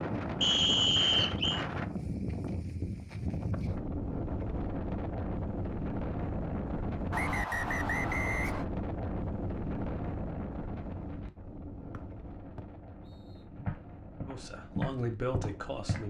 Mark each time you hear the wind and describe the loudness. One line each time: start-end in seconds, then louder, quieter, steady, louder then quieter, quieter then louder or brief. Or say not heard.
0.0-16.0 quieter.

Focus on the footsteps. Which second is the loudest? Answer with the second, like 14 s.
15 s.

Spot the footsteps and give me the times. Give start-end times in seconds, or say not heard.
13.6-16.0.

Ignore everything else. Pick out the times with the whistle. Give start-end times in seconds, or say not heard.
0.4-1.6, 7.1-8.7, 11.9-13.4.